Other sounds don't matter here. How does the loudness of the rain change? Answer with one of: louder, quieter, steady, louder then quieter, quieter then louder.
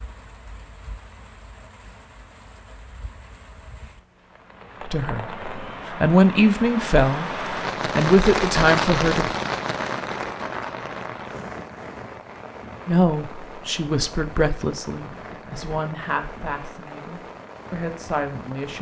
louder then quieter.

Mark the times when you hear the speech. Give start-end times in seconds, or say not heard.
4.8-9.3, 12.8-18.7.